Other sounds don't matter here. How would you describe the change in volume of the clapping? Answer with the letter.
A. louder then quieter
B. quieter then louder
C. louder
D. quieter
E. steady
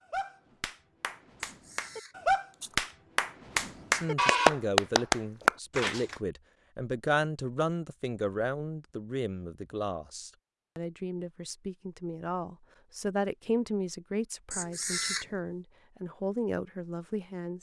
C.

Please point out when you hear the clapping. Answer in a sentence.
The clapping can be heard from 0.1 to 6.2 s.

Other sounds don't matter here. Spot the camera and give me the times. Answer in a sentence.
You can hear the camera from 1.4 to 3.0 s and from 14.5 to 15.3 s.